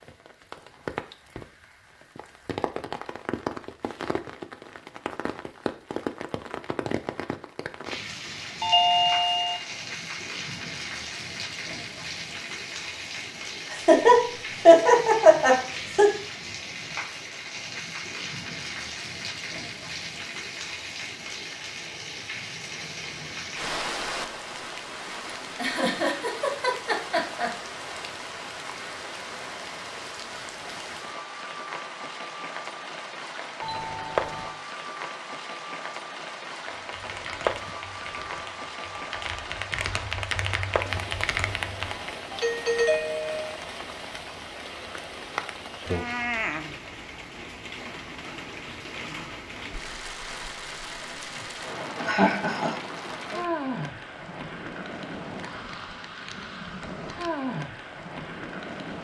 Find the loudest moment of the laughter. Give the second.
15 s.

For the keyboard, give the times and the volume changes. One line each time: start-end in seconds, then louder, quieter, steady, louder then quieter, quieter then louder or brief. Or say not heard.
36.7-42.1 louder.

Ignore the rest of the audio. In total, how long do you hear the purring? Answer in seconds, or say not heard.
not heard.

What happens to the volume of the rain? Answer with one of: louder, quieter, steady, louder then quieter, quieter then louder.
steady.